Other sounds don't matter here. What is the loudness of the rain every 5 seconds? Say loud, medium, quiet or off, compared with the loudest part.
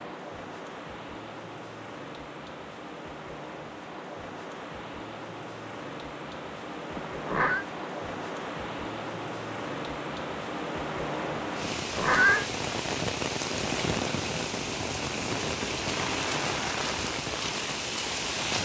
medium, medium, loud, loud.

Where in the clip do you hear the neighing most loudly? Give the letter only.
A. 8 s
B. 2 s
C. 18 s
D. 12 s
D.